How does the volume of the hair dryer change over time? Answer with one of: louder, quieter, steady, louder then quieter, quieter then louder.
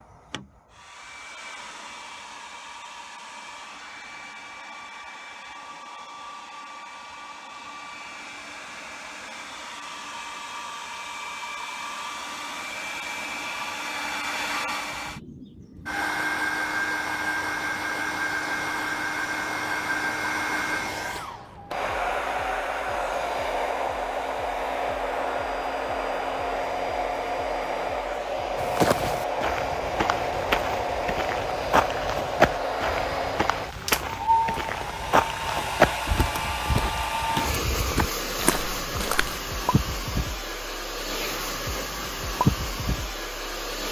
louder.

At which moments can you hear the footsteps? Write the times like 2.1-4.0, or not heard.
28.6-39.4.